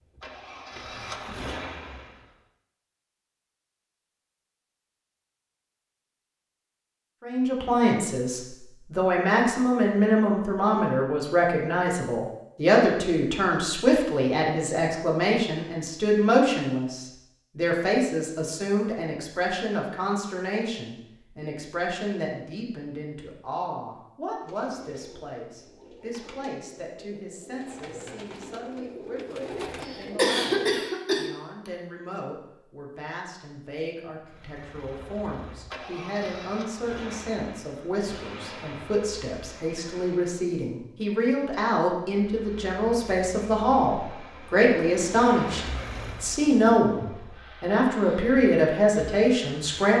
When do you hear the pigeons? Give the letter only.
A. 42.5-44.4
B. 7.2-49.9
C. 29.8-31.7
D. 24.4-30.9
D.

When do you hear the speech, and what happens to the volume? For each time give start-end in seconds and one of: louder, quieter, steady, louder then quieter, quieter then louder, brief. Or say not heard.
7.2-49.9 quieter then louder.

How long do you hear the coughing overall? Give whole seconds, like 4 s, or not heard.
2 s.